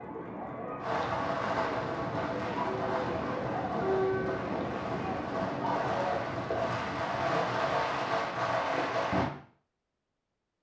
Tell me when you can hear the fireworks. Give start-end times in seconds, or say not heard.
0.8-9.3.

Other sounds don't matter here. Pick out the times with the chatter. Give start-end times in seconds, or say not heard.
0.0-6.3.